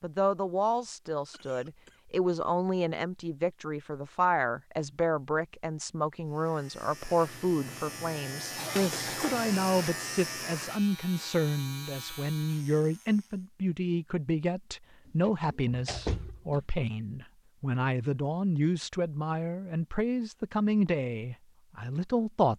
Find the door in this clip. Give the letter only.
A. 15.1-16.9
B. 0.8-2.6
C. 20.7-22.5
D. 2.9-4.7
A.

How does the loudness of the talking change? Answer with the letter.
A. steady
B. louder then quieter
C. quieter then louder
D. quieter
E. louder
A.